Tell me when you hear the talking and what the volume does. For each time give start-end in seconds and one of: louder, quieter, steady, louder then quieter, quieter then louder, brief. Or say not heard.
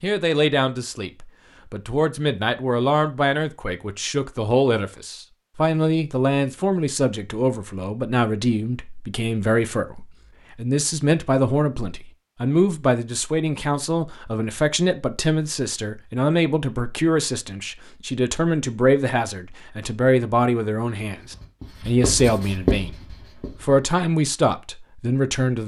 0.0-25.6 steady.